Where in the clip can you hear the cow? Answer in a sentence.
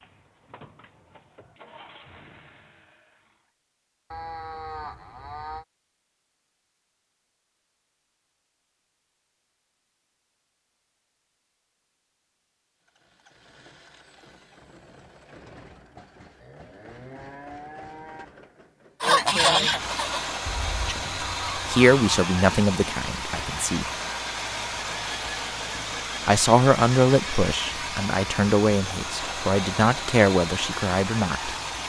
You can hear the cow from 4.1 to 5.7 s and from 16.4 to 18.2 s.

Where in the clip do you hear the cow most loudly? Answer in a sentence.
The loudest moment of the cow is at 5 seconds.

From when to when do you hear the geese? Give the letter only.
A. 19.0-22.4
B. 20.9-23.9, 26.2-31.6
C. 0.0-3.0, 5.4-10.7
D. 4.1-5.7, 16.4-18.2
A.